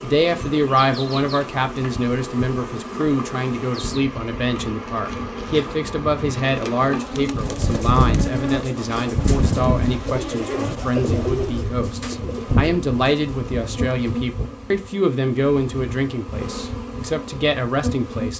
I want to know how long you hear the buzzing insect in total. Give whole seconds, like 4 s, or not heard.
18 s.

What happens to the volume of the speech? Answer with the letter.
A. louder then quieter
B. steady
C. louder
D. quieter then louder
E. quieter
B.